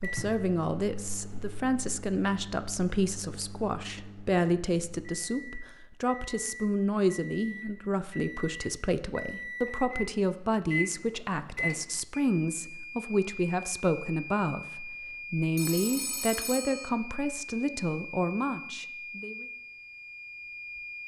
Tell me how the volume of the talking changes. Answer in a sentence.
The volume of the talking stays about the same.